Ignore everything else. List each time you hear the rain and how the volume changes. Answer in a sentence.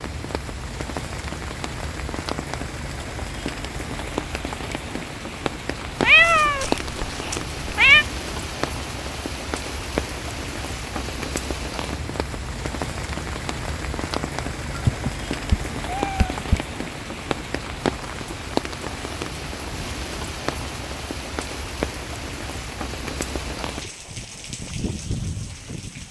The rain can be heard from 0.0 to 26.0 s, at a steady volume.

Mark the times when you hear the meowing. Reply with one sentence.
You can hear the meowing from 6.0 to 8.1 s and from 14.8 to 16.6 s.